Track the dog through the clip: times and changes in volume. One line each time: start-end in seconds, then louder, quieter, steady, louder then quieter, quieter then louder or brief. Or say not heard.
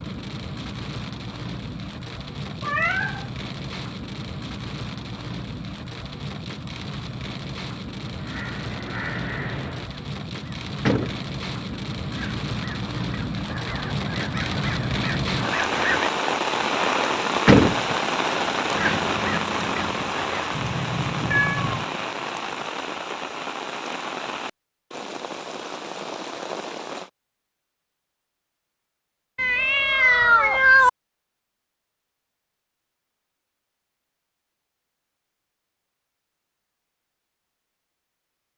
not heard.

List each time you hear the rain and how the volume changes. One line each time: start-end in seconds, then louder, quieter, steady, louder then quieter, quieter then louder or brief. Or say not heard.
0.0-27.1 louder then quieter.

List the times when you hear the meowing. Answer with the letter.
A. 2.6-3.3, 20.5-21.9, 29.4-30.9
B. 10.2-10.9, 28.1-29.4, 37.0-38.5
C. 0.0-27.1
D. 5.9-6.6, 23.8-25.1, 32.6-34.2
A.